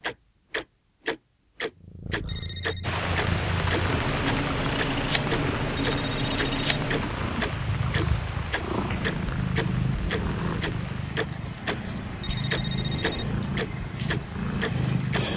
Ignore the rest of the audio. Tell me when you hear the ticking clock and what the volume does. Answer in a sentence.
The ticking clock can be heard from 0.0 to 11.8 s, at a steady volume; and briefly from 12.5 to 15.2 s.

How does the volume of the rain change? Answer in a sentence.
The loudness of the rain goes down.